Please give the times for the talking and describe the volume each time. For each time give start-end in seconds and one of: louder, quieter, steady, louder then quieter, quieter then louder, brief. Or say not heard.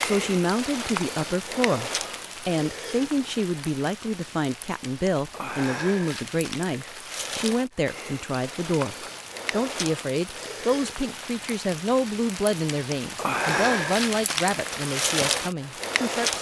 0.0-16.3 steady.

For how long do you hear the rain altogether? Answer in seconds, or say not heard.
16 s.